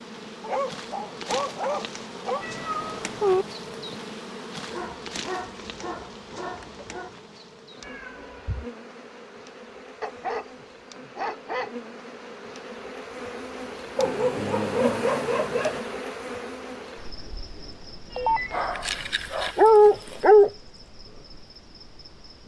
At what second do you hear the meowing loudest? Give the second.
3 s.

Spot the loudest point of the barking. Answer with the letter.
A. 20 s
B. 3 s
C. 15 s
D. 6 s
A.